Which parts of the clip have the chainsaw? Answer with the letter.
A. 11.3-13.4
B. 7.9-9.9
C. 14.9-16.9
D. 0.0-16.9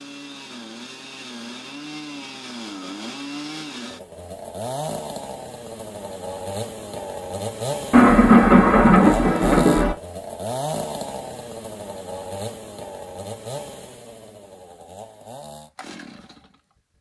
D.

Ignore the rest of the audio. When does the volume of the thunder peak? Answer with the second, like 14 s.
8 s.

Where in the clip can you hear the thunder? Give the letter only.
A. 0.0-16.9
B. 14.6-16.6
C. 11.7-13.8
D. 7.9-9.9
D.